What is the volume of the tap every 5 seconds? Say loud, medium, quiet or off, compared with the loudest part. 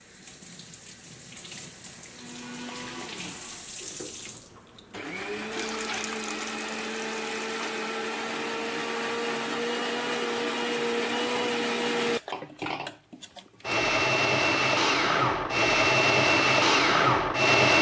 loud, loud, off, off.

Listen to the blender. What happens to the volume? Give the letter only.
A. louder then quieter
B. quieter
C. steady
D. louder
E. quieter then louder
D.